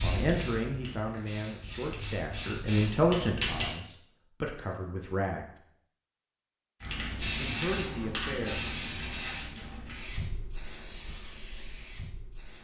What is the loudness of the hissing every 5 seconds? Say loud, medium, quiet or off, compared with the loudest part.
loud, loud, medium.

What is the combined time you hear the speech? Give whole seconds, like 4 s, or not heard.
7 s.